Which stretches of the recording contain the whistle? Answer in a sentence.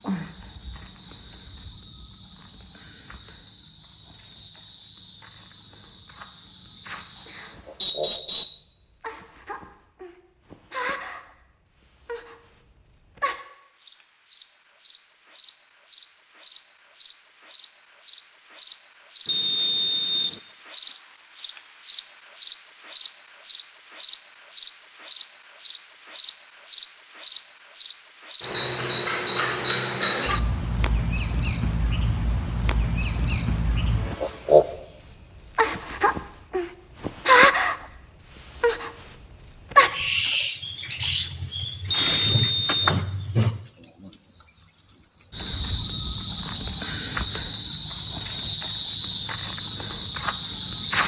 You can hear the whistle from 7.8 to 8.7 s, from 19.2 to 20.4 s and from 41.9 to 43.0 s.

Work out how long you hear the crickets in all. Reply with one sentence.
You can hear the crickets for 51 seconds altogether.